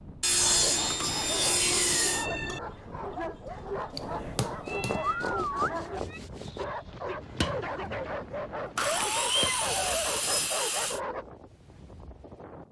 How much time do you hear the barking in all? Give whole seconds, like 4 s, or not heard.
11 s.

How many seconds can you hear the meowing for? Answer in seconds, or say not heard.
5 s.